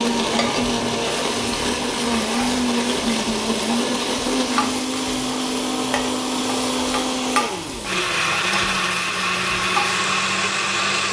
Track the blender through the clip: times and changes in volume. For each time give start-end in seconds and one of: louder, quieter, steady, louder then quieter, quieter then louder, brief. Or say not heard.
0.0-11.0 steady.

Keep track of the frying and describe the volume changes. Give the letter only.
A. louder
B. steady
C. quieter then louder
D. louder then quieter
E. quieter
B.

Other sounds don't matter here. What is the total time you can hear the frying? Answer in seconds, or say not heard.
11 s.